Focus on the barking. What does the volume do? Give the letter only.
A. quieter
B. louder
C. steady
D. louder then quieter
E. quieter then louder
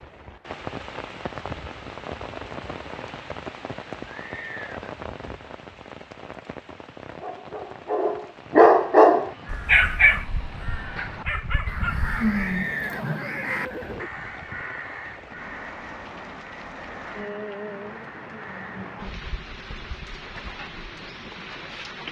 D.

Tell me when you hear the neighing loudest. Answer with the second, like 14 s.
13 s.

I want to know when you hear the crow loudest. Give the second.
12 s.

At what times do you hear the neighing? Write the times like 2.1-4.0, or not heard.
4.0-5.0, 12.2-14.1.